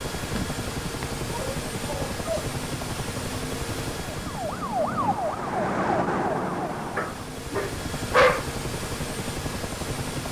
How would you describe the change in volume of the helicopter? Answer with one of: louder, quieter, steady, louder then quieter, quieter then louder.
quieter then louder.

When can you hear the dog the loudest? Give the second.
8 s.